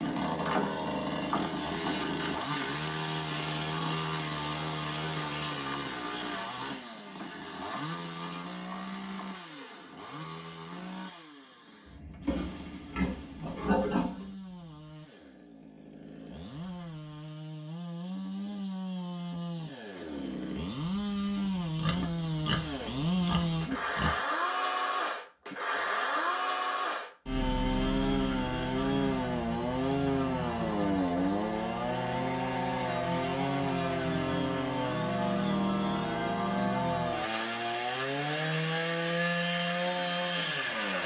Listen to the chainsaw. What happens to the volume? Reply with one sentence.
The volume of the chainsaw goes down, then up.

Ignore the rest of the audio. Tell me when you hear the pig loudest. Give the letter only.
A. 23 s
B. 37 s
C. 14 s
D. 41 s
C.